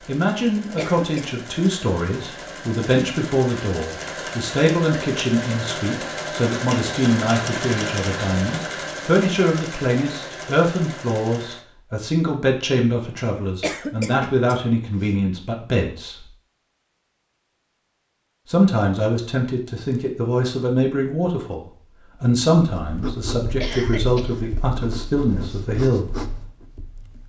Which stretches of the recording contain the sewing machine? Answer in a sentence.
The sewing machine can be heard from 0.0 to 11.7 s.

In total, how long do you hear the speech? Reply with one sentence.
The speech can be heard for 24 seconds in total.